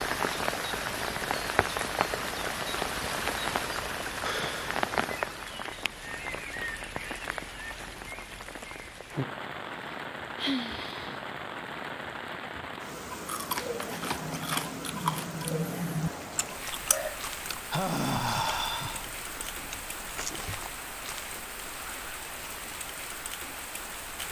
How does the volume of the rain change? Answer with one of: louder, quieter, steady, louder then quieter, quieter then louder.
quieter.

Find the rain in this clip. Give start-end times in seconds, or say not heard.
0.0-24.2.